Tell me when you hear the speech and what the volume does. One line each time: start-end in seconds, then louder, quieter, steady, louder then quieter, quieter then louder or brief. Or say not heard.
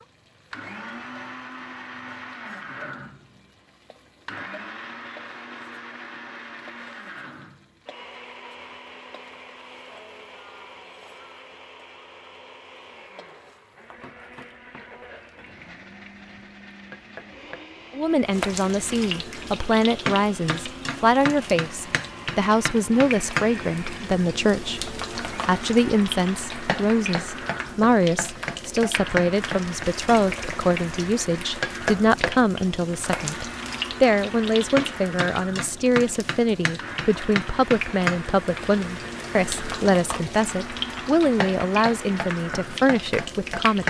17.9-43.8 steady.